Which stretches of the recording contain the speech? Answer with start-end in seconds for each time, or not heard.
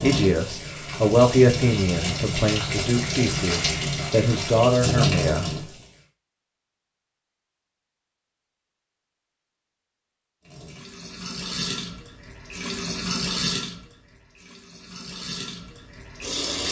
0.0-5.7.